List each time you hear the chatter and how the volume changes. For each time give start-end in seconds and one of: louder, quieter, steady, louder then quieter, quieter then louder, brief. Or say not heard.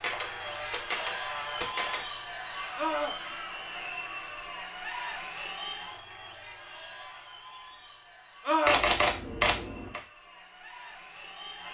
0.0-11.6 quieter.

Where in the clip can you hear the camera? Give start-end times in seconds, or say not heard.
0.0-2.0, 8.7-10.0.